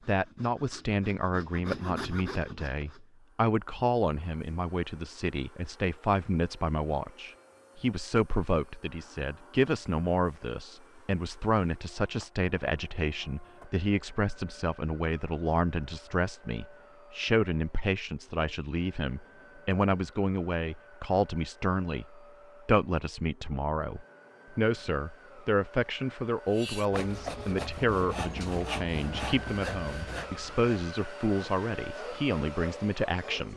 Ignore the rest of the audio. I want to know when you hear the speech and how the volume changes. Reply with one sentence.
The speech can be heard from 0.1 to 33.5 s, at a steady volume.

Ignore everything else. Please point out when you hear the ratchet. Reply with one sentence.
The ratchet can't be heard in this clip.